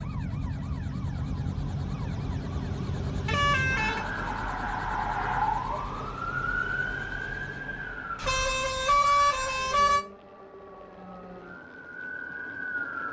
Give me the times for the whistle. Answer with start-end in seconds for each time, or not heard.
not heard.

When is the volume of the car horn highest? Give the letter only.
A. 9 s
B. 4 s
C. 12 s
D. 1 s
A.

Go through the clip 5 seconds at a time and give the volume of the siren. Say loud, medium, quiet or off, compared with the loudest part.
loud, loud, medium.